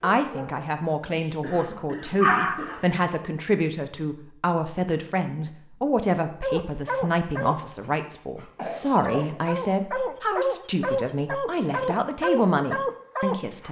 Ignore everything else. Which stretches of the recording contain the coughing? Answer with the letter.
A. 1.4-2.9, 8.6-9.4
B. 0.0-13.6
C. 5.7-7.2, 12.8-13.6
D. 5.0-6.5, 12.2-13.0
A.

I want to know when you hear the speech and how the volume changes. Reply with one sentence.
You can hear the speech from 0.0 to 13.6 s, at a steady volume.